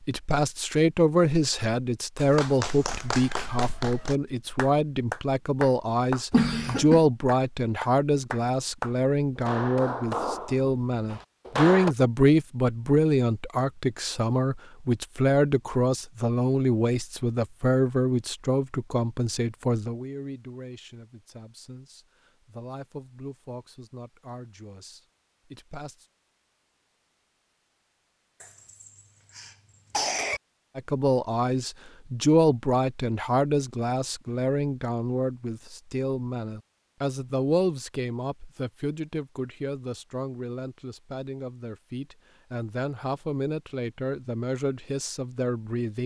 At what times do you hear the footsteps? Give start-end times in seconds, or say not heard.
not heard.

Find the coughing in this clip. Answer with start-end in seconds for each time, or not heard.
6.3-7.0, 28.4-30.4.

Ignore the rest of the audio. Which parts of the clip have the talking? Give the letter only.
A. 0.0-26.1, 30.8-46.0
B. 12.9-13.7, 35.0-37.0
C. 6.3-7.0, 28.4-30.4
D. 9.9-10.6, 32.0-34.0
A.